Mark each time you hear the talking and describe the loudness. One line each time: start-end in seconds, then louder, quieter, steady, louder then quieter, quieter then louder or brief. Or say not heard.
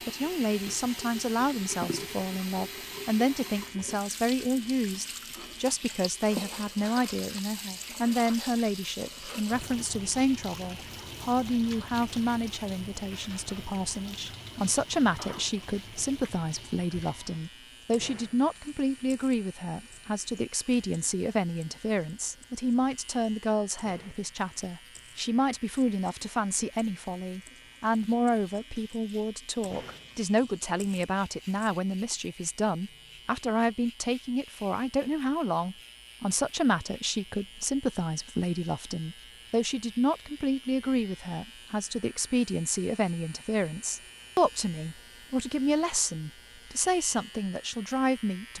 0.1-48.5 steady.